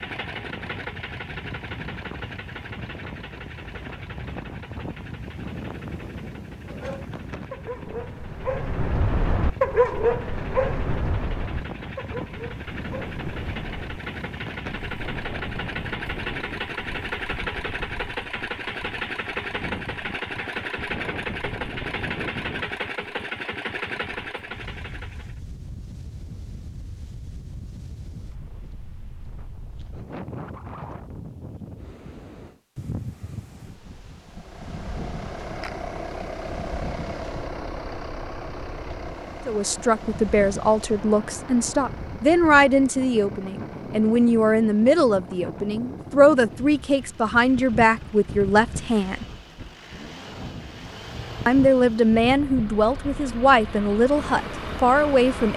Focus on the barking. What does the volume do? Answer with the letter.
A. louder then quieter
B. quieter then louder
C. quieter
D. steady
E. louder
A.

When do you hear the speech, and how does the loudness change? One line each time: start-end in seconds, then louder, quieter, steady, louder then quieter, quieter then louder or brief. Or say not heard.
39.5-49.2 steady
51.5-55.5 steady.